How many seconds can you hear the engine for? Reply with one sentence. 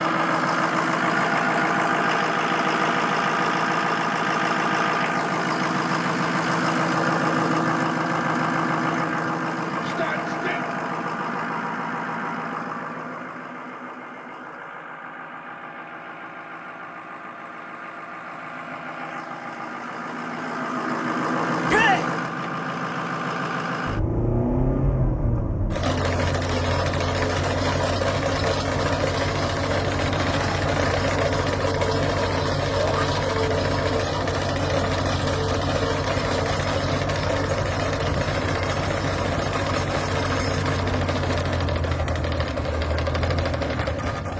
The engine can be heard for 44 seconds in total.